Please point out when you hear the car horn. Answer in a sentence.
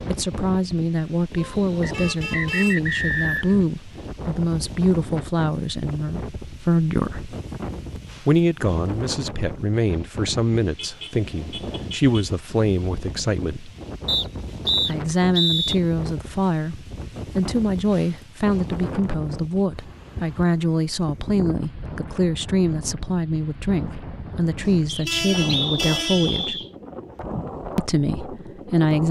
The car horn can be heard from 1.4 to 2.8 s, from 10.8 to 12.2 s and from 24.6 to 26.4 s.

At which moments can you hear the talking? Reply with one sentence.
The talking can be heard from 0.1 to 7.3 s, from 8.2 to 13.7 s, from 14.8 to 26.6 s and from 27.8 to 29.0 s.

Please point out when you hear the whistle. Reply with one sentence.
The whistle can be heard from 1.8 to 3.5 s, from 14.1 to 15.8 s and from 24.9 to 26.7 s.